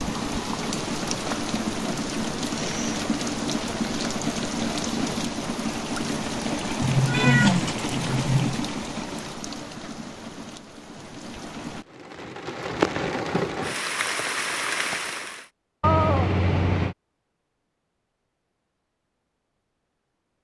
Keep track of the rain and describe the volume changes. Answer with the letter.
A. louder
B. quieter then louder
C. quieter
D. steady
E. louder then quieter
B.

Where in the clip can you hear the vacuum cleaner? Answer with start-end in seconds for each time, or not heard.
not heard.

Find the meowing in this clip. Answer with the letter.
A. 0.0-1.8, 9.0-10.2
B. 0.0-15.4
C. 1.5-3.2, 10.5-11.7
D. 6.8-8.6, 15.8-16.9
D.